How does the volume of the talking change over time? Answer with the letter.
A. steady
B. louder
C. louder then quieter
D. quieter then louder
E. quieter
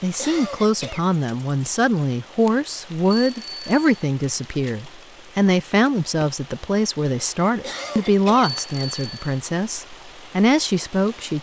A.